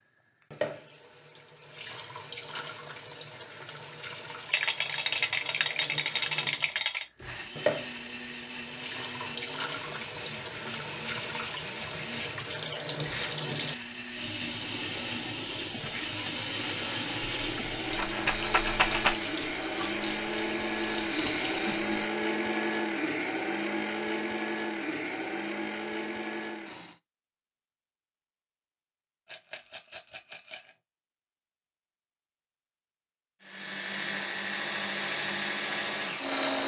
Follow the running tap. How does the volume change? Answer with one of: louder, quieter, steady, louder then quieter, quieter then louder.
louder.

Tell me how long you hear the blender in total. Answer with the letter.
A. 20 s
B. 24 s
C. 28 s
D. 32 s
B.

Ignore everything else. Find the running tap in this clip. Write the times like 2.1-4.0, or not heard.
0.4-22.1.